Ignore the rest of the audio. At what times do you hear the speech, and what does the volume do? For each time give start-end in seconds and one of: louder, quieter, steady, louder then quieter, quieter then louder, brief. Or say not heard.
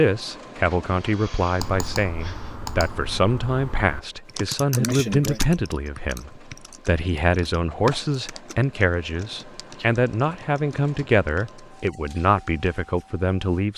0.0-13.7 steady.